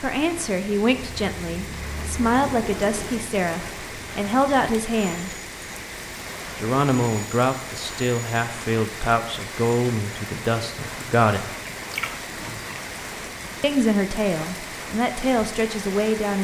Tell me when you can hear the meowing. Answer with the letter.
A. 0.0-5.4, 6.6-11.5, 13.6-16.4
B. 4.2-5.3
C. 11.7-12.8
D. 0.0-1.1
C.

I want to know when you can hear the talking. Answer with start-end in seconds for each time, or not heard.
0.0-5.4, 6.6-11.5, 13.6-16.4.